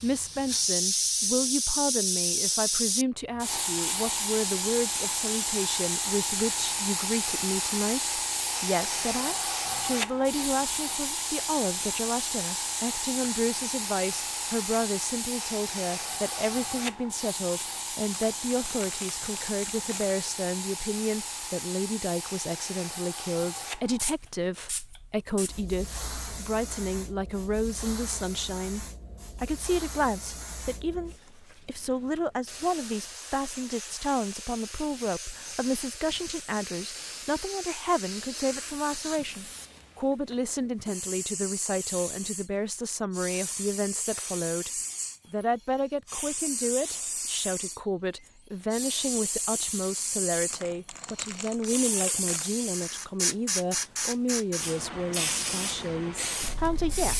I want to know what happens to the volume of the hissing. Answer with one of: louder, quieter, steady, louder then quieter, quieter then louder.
quieter then louder.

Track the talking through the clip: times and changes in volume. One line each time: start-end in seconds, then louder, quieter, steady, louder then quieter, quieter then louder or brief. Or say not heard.
0.0-44.7 steady
45.3-57.1 steady.